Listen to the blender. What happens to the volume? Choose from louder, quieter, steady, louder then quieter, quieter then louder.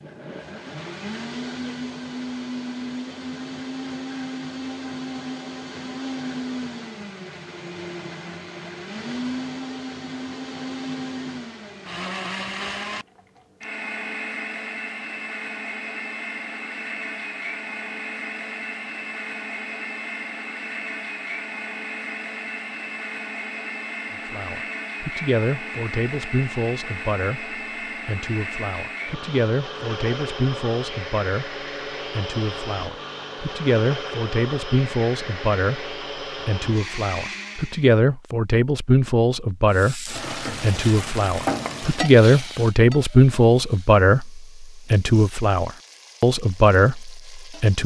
steady.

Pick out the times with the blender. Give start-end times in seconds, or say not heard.
0.0-37.9.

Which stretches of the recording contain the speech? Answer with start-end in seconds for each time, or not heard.
24.2-47.8.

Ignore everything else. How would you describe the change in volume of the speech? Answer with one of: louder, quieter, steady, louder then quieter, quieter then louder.
louder.